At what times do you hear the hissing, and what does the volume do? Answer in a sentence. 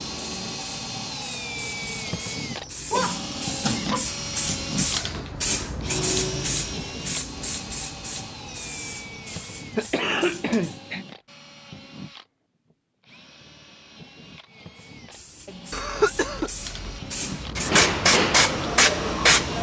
You can hear the hissing from 0.0 to 10.8 s, getting louder then quieter; and from 14.8 to 19.5 s, getting louder.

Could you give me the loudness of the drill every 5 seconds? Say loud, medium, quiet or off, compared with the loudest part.
loud, medium, quiet, medium.